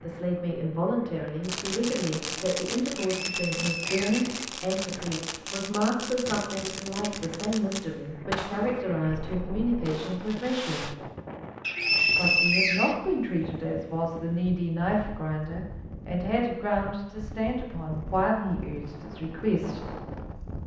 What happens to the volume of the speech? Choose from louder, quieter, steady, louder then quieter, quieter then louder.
steady.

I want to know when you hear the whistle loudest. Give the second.
12 s.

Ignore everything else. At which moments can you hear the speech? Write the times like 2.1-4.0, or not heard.
0.0-10.9, 12.2-19.9.